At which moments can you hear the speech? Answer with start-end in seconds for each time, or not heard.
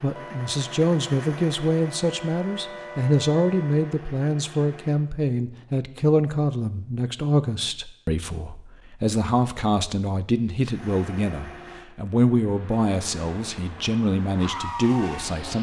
0.0-15.5.